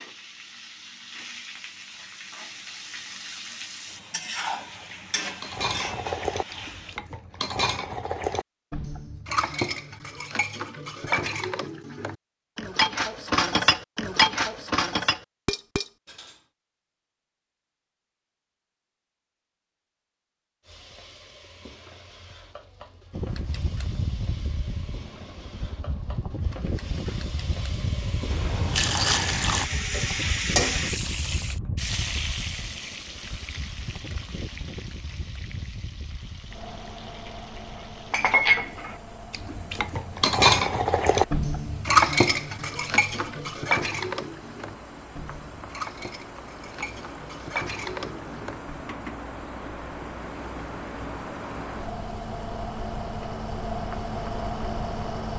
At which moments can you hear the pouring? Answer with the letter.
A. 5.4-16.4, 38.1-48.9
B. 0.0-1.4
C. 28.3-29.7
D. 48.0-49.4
C.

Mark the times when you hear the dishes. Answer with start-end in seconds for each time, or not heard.
5.4-16.4, 38.1-48.9.